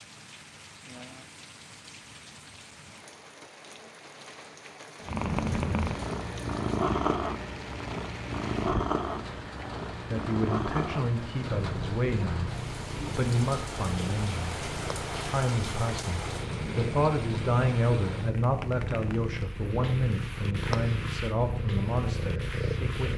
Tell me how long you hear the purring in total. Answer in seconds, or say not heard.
18 s.